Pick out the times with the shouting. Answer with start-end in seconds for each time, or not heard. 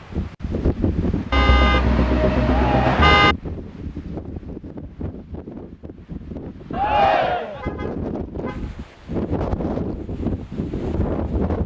2.5-3.1, 6.7-7.7.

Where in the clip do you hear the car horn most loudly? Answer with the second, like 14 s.
3 s.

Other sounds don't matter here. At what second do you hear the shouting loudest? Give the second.
7 s.